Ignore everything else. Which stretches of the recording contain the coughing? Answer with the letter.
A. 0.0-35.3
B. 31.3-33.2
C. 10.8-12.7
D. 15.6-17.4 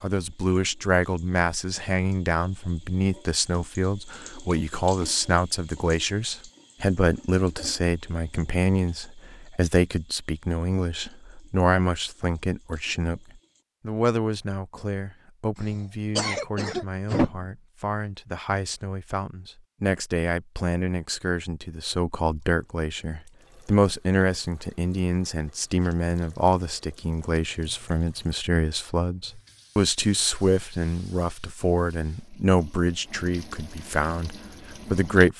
D.